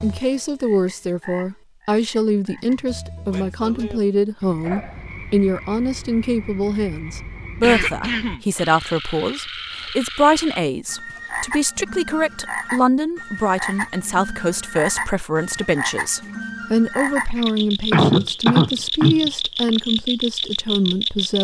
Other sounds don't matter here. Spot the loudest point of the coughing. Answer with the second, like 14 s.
18 s.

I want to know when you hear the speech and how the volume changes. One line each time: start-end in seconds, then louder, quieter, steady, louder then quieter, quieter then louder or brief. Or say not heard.
0.0-21.3 steady.